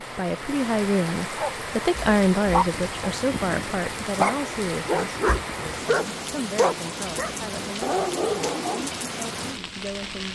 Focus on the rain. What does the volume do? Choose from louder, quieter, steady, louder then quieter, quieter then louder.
steady.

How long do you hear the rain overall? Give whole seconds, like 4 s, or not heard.
10 s.